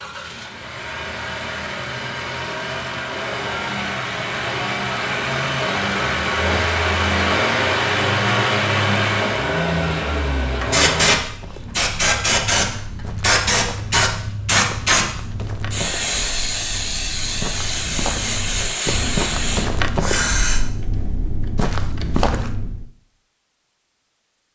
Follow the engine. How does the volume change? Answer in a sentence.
The volume of the engine goes up.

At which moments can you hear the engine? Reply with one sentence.
You can hear the engine from 0.0 to 11.2 s.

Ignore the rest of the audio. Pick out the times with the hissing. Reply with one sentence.
You can hear the hissing from 10.6 to 20.6 s.